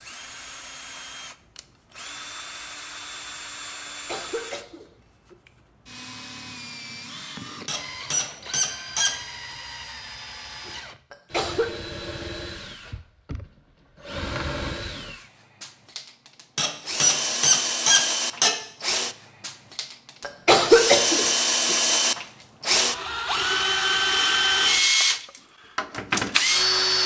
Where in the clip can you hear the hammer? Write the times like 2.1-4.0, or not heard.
not heard.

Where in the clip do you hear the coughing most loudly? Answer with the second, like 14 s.
21 s.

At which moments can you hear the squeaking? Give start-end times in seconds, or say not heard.
7.7-9.2, 16.6-18.6.